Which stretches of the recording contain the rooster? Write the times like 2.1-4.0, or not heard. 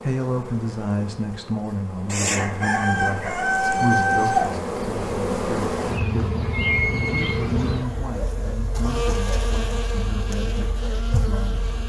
2.1-4.5.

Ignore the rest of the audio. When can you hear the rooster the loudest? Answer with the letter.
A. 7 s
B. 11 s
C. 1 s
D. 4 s
D.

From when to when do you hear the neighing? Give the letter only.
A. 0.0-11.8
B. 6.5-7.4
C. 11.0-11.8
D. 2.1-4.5
B.